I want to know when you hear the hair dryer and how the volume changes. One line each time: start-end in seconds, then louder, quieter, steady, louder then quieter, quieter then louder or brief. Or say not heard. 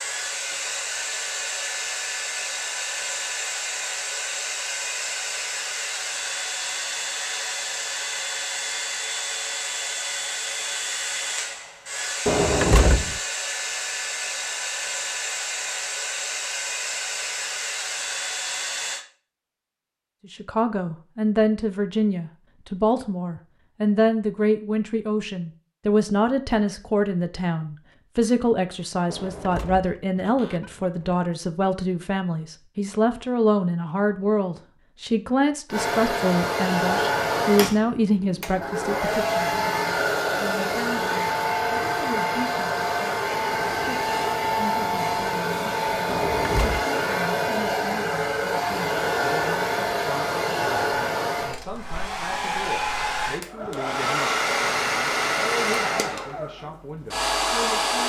0.0-19.1 steady
35.7-58.0 steady.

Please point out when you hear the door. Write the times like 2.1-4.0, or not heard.
12.2-13.2, 29.1-31.2, 46.0-46.9.